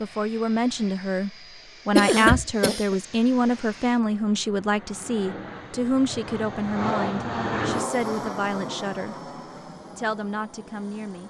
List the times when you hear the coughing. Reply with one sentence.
You can hear the coughing from 1.9 to 3.0 s.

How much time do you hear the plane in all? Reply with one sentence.
You can hear the plane for 11 seconds altogether.